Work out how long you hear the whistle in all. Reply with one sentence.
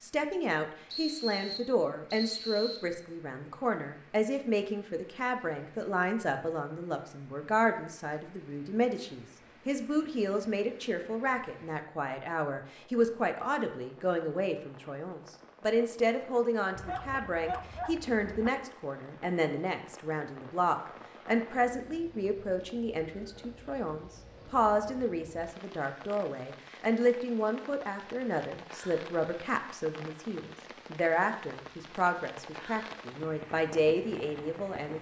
The whistle can be heard for 2 seconds in total.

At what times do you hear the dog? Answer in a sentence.
The dog can be heard from 16.8 to 18.5 s.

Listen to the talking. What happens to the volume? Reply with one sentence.
The volume of the talking stays about the same.